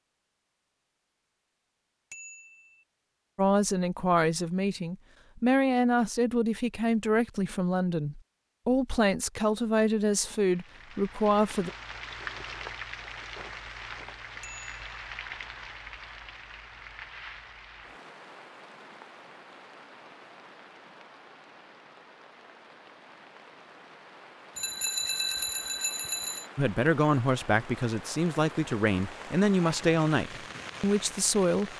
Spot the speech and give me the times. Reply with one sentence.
You can hear the speech from 3.4 to 11.7 s and from 26.6 to 31.7 s.